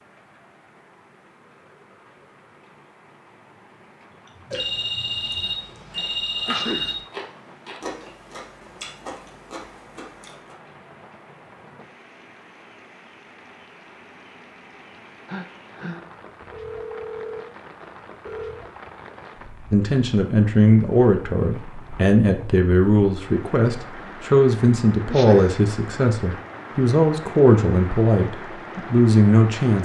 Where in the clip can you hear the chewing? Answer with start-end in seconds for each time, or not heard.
4.2-10.6.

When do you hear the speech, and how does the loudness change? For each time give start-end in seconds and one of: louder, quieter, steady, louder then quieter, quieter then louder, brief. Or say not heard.
19.7-29.8 steady.